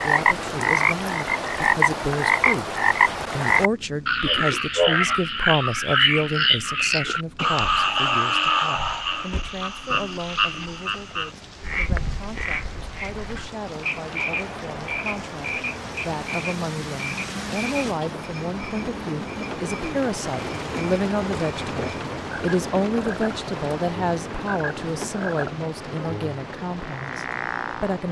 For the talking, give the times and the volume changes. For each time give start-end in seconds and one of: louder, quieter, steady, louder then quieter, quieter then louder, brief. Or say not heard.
0.0-28.0 quieter then louder.